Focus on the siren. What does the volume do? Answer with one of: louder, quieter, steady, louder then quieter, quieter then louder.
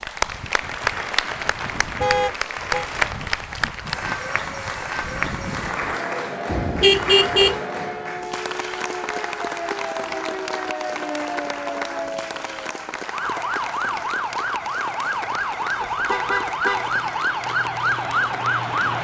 louder.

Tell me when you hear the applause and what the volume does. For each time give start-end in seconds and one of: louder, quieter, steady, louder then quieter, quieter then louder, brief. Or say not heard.
0.0-19.0 quieter.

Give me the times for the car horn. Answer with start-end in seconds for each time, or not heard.
2.0-2.9, 6.5-7.5, 15.8-16.9.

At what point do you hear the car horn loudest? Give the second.
7 s.